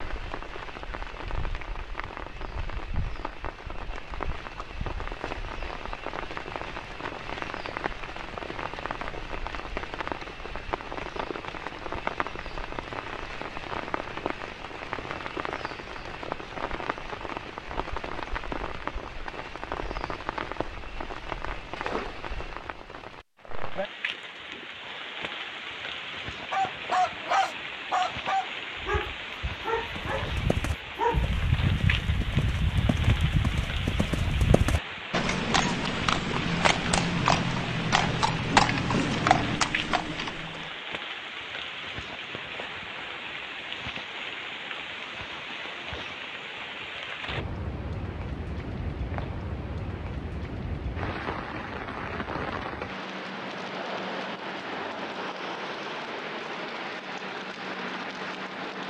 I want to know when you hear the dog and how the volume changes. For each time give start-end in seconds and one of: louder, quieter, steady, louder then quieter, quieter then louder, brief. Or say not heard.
26.5-31.4 quieter.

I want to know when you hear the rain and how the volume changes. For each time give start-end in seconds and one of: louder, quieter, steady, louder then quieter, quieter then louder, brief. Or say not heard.
0.0-58.8 steady.